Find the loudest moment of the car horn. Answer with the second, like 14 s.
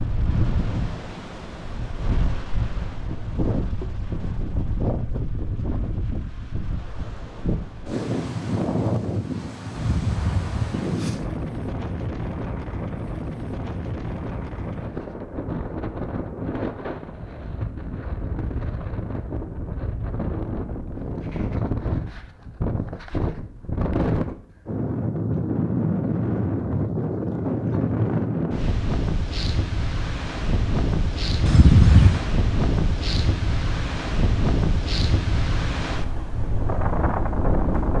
32 s.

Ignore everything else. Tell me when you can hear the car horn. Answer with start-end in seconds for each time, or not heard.
9.8-10.9, 31.4-32.3.